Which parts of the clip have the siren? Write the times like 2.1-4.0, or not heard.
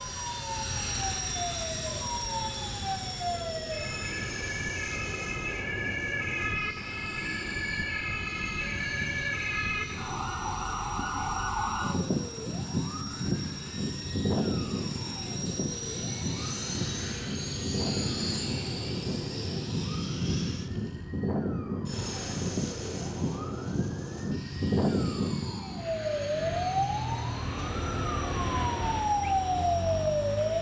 0.0-30.5.